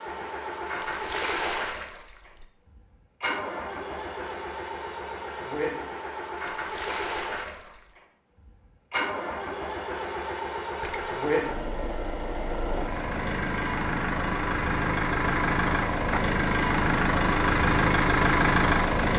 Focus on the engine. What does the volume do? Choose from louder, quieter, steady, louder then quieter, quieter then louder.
louder.